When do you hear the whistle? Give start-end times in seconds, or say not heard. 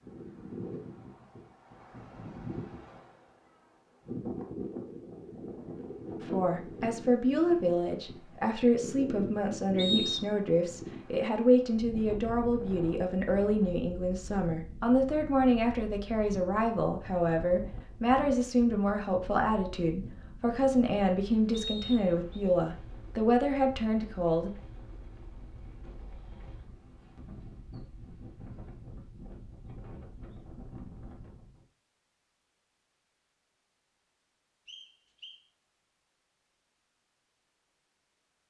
9.8-10.3, 21.5-22.4, 34.6-35.4.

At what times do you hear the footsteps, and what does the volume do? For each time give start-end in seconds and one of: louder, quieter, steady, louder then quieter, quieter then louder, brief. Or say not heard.
not heard.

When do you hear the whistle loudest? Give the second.
10 s.